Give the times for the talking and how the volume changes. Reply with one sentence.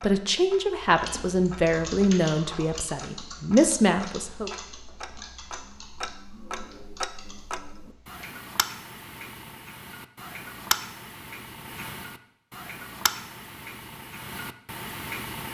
You can hear the talking from 0.0 to 4.5 s, getting quieter then louder.